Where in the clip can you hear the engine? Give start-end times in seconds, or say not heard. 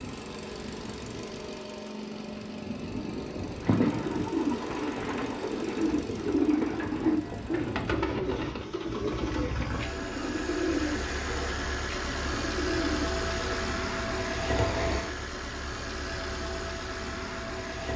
0.0-17.9.